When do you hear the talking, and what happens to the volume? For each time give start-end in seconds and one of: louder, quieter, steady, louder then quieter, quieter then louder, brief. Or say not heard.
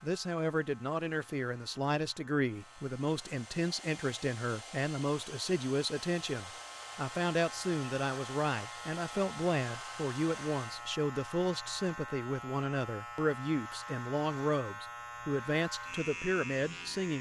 0.0-17.1 steady.